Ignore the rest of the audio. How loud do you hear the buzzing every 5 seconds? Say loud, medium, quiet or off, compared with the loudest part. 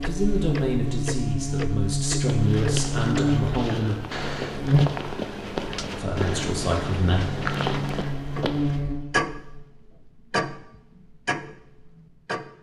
loud, medium, off.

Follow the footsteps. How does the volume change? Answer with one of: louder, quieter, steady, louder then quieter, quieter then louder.
steady.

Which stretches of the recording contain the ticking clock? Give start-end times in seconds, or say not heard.
0.0-12.5.